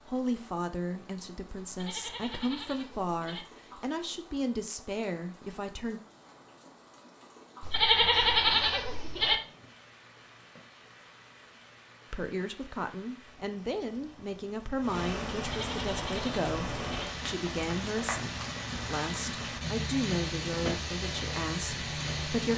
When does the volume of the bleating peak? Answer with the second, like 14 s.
8 s.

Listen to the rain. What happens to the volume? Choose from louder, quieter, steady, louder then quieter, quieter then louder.
louder.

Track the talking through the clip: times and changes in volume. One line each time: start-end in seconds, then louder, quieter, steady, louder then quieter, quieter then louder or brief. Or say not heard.
0.1-6.0 steady
12.1-22.5 steady.